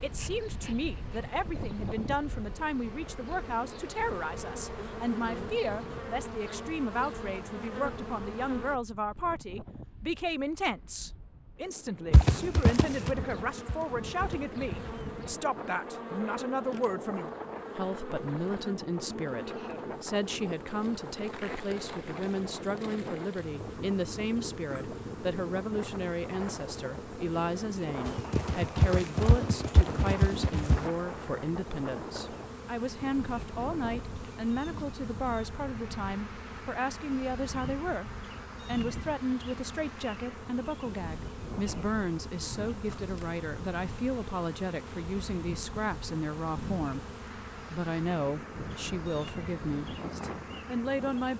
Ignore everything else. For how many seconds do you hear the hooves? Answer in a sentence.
You can hear the hooves for 6 seconds altogether.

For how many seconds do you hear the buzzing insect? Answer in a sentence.
The buzzing insect can be heard for 47 seconds in total.